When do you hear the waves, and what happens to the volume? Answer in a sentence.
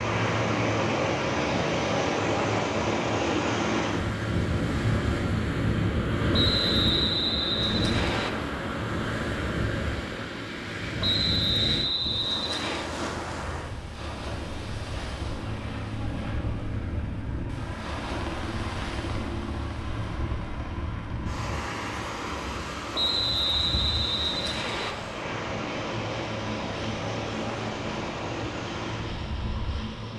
You can hear the waves from 0.0 to 30.1 s, getting quieter.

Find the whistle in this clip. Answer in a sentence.
You can hear the whistle from 6.3 to 8.3 s, from 11.0 to 12.9 s and from 22.9 to 24.9 s.